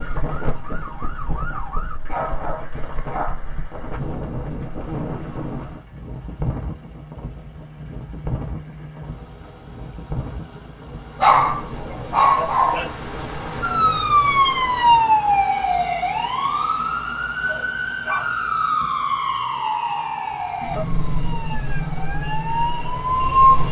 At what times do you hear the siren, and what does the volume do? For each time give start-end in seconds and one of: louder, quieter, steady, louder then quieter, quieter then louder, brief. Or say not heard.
0.0-1.9 brief
13.6-23.6 quieter.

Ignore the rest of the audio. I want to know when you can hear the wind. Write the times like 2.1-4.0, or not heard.
0.0-15.4.